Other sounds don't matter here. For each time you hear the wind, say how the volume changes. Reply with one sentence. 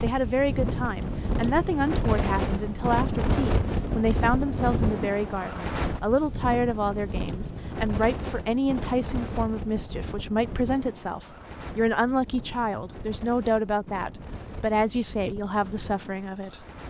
You can hear the wind from 0.0 to 16.8 s, getting quieter.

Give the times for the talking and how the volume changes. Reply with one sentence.
The talking can be heard from 0.0 to 16.6 s, at a steady volume.